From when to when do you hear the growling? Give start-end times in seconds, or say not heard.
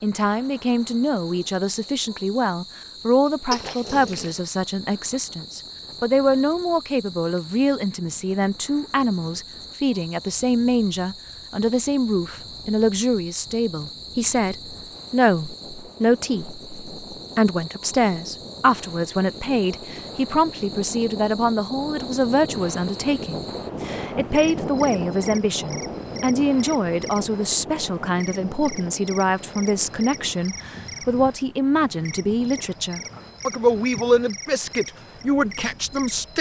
3.5-4.3.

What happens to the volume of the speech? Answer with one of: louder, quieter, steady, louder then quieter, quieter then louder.
steady.